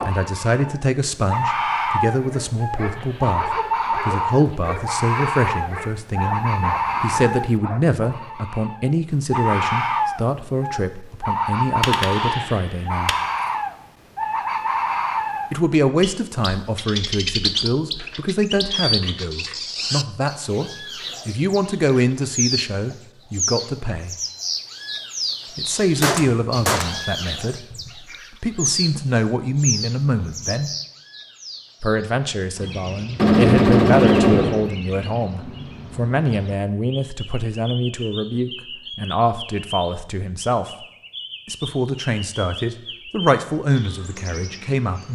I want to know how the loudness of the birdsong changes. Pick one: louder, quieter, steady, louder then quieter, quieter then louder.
quieter.